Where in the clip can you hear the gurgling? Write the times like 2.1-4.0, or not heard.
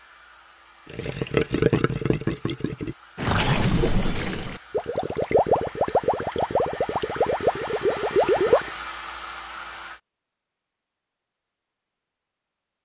0.9-8.7.